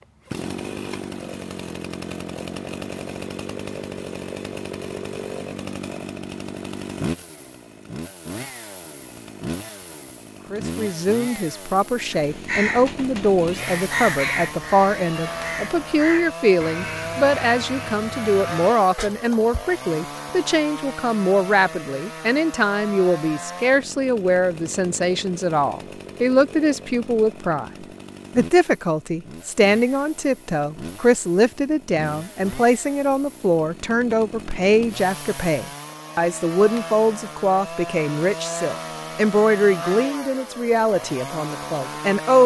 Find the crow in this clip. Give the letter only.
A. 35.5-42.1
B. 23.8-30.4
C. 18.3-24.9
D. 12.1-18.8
D.